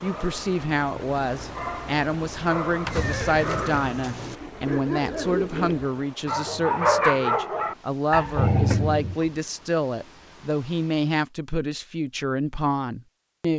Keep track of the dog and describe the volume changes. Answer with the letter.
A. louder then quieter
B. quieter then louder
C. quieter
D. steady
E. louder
E.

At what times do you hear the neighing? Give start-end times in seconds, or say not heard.
2.8-4.3.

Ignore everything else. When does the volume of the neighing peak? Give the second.
3 s.